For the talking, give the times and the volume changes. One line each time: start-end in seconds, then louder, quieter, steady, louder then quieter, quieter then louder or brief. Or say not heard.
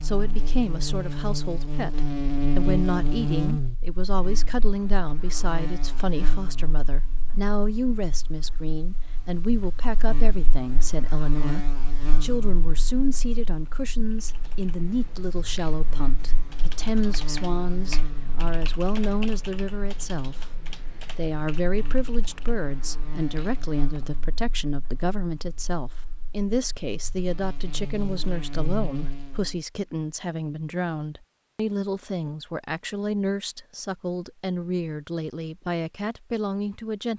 0.0-37.1 steady.